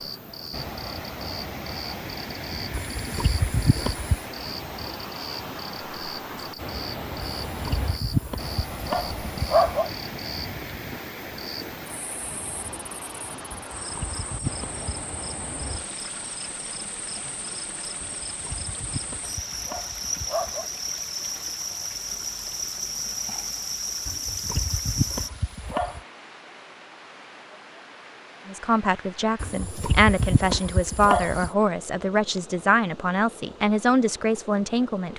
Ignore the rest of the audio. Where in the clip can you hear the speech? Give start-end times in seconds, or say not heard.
28.4-35.1.